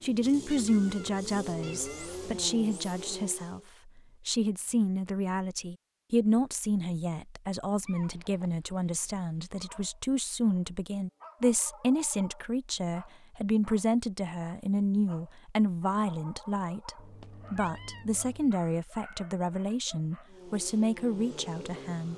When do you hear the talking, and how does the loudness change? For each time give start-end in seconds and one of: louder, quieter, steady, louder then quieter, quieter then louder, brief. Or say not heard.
0.0-22.1 steady.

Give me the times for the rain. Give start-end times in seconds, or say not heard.
not heard.